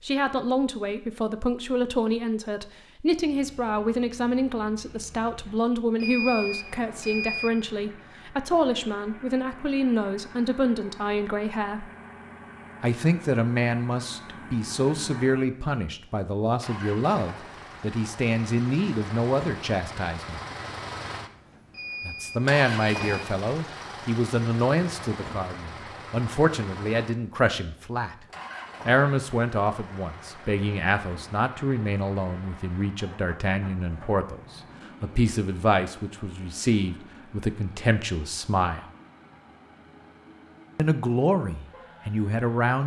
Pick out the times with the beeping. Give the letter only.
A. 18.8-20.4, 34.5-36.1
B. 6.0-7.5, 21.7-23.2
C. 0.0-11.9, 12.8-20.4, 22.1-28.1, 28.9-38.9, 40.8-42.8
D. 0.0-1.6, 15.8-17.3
B.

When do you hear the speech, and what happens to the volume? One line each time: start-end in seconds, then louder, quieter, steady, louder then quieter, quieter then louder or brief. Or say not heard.
0.0-11.9 steady
12.8-20.4 steady
22.1-28.1 steady
28.9-38.9 steady
40.8-42.8 brief.